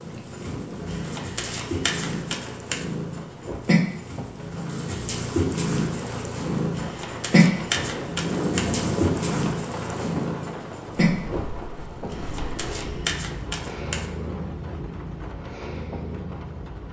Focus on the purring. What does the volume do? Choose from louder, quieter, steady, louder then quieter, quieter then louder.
louder then quieter.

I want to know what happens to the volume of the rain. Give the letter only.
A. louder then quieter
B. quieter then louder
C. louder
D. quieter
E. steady
A.